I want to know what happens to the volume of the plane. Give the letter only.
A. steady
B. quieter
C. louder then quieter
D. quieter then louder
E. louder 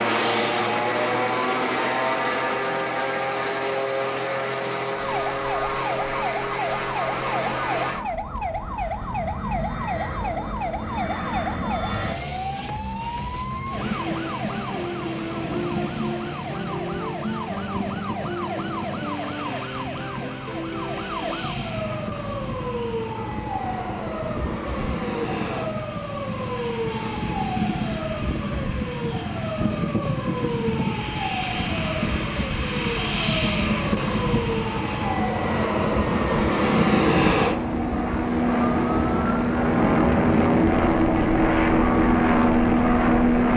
D.